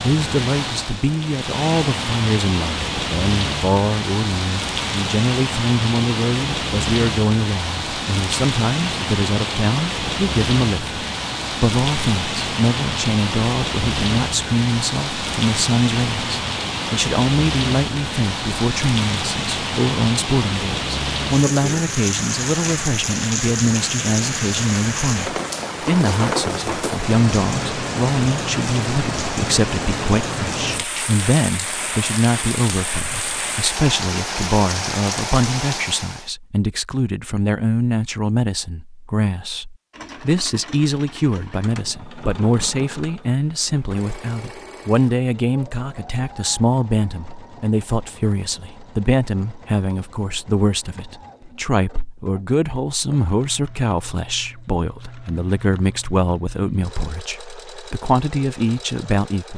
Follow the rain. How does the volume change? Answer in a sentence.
The loudness of the rain stays about the same.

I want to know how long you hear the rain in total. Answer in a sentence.
You can hear the rain for 36 seconds altogether.